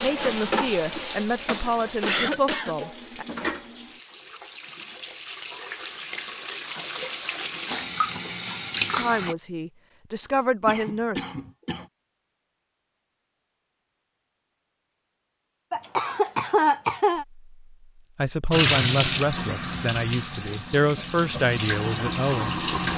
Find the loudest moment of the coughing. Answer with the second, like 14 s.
17 s.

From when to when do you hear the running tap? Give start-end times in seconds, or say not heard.
0.0-9.3, 18.5-22.9.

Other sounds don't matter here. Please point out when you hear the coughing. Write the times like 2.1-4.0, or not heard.
2.0-2.8, 10.7-11.8, 15.7-17.2.